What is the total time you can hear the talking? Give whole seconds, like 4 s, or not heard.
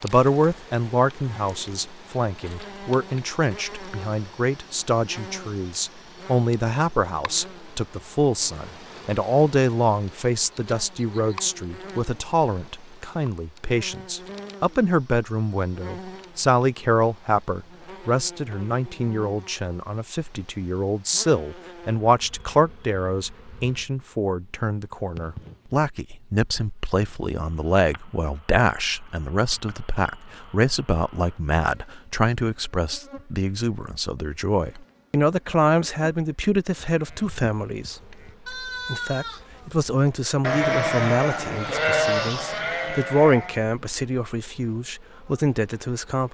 45 s.